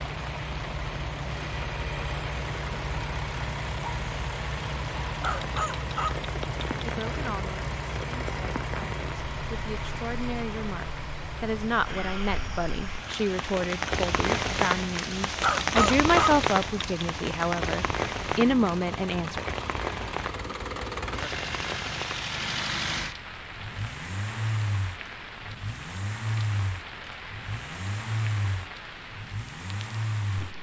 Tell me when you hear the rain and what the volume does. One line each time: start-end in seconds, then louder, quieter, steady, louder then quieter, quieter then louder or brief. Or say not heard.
0.0-30.5 louder then quieter.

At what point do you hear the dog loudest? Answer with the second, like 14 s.
16 s.